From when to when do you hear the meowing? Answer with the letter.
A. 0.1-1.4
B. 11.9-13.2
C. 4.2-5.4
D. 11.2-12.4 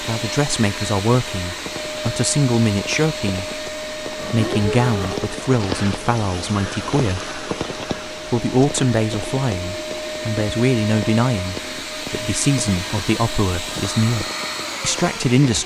C.